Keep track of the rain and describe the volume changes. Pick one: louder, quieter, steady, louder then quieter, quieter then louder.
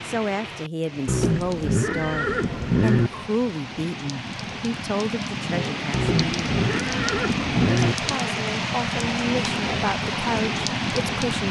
louder.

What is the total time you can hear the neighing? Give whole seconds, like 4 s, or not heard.
4 s.